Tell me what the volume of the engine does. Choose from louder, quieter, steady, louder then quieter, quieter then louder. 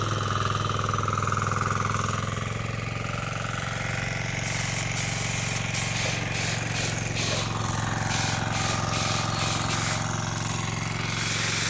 steady.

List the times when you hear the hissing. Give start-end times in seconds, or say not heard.
4.4-11.6.